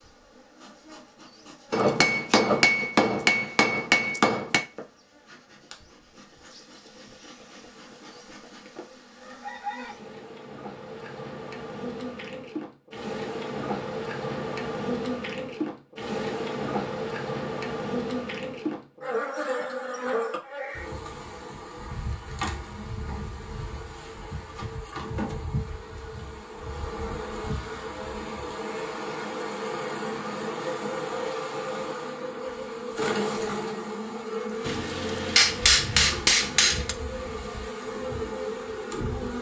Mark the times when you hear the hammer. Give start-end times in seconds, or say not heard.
1.7-4.7, 34.6-37.0.